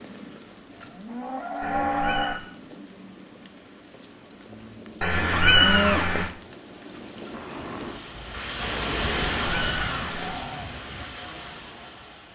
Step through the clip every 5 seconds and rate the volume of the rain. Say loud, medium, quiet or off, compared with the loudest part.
quiet, loud, medium.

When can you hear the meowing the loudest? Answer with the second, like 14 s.
6 s.